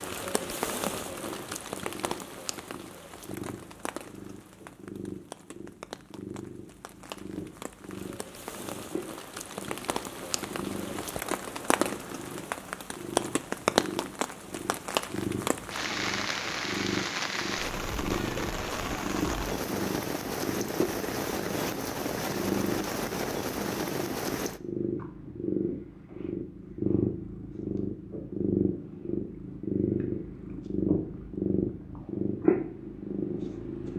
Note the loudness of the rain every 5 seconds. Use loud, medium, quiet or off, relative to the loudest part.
medium, medium, loud, loud, loud, off, off.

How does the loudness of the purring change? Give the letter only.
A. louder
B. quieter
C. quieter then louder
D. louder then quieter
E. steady
A.